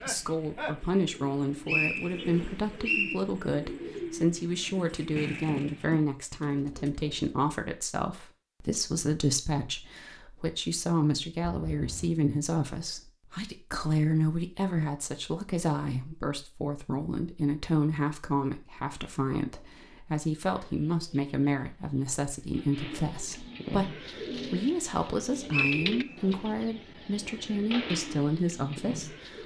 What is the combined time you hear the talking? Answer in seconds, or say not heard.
29 s.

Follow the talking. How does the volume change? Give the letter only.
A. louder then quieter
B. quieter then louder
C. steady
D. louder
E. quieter
C.